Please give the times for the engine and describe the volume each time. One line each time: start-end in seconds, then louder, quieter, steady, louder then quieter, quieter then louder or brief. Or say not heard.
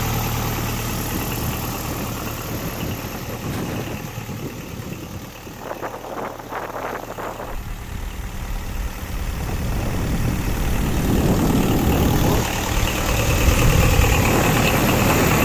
0.0-15.4 quieter then louder.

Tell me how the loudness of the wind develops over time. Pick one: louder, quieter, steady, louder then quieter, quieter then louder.
louder.